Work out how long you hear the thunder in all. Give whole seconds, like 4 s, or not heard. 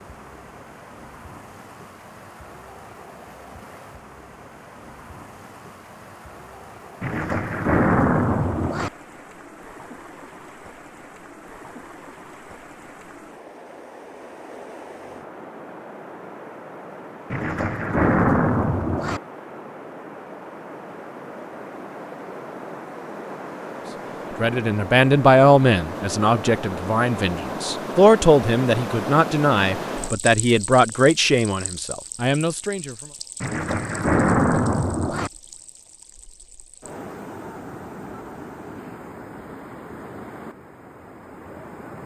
6 s.